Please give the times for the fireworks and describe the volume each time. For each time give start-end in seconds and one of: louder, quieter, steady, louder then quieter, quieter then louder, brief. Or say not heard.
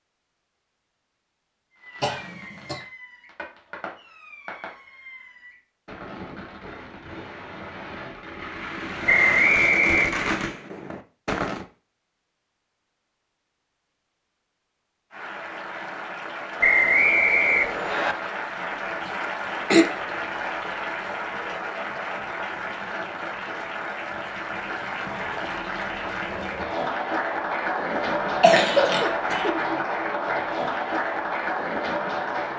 1.8-11.7 louder.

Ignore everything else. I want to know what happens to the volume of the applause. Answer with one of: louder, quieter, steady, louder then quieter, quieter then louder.
louder.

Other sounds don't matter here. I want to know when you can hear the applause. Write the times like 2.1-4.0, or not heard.
15.1-32.5.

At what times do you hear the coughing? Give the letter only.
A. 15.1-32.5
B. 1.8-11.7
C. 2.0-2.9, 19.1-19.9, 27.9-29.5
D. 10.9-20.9
C.